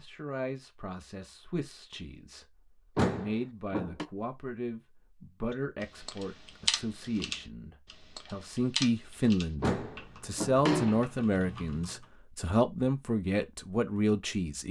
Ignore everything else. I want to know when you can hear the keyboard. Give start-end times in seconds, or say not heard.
5.5-12.1.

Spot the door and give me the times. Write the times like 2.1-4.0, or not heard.
3.0-4.0, 9.6-11.1.